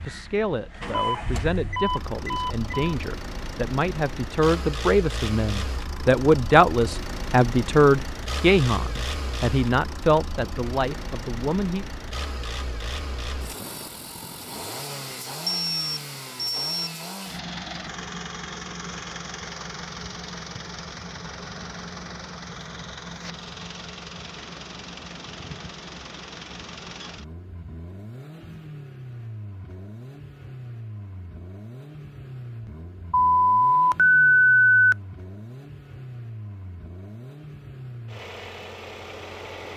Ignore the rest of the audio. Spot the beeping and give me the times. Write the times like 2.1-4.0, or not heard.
0.9-3.0, 15.4-16.9, 33.1-35.0.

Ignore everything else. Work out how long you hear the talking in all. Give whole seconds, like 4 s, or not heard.
12 s.